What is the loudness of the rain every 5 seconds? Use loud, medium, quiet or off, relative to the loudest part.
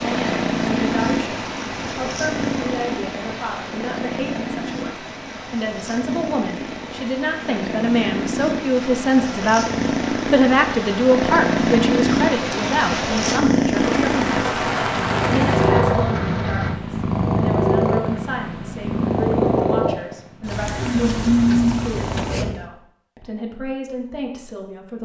medium, medium, loud, loud, off.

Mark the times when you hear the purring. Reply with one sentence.
The purring can be heard from 0.0 to 22.6 s.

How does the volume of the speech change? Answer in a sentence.
The volume of the speech goes up, then down.